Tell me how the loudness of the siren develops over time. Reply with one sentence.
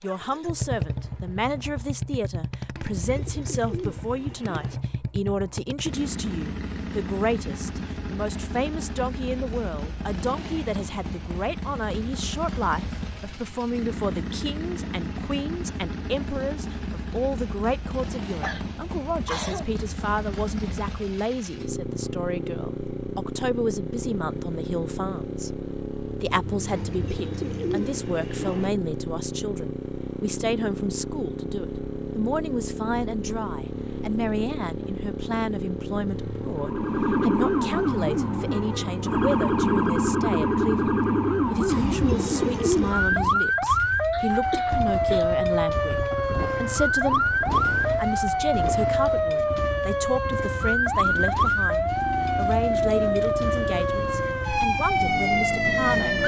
The volume of the siren stays about the same.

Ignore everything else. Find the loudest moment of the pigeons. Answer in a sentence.
The volume of the pigeons peaks at 43 seconds.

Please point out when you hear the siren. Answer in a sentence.
The siren can be heard from 36.5 to 56.2 s.